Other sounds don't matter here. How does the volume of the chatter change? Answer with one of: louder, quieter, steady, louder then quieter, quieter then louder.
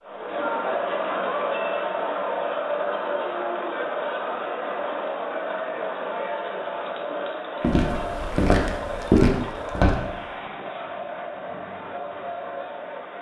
quieter.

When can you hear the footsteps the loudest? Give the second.
9 s.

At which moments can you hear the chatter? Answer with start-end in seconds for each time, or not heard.
0.0-13.1.